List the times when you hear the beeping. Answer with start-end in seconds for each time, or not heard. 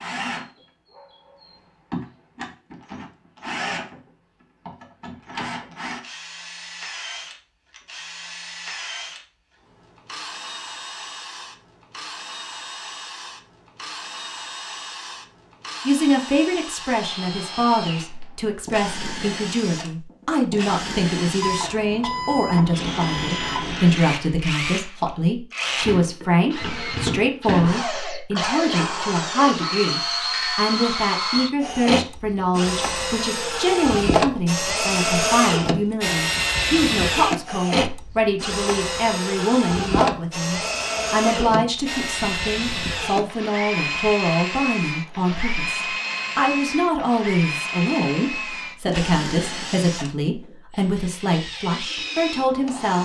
21.4-23.8.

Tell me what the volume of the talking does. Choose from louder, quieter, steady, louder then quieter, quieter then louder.
steady.